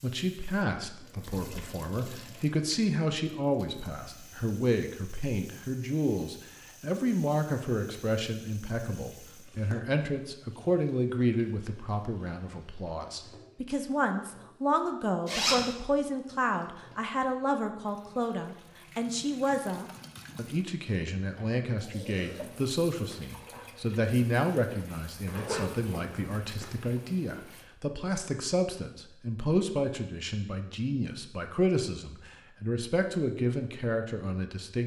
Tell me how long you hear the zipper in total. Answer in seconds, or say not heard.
2 s.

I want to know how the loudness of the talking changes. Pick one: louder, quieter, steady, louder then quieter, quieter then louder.
steady.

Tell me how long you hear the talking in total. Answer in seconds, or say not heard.
35 s.